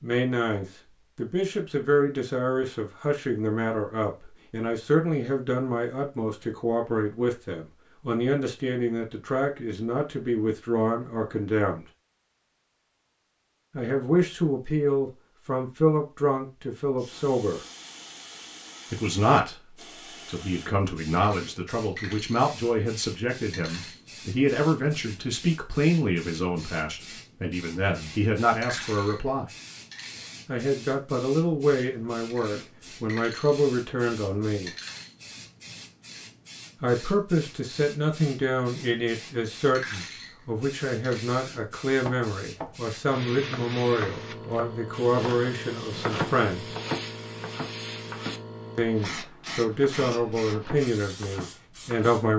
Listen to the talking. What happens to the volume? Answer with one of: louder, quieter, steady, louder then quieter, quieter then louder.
steady.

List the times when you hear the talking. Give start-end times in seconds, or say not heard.
0.0-11.8, 13.8-17.6, 18.9-29.4, 30.4-34.8, 36.8-46.8, 48.8-52.3.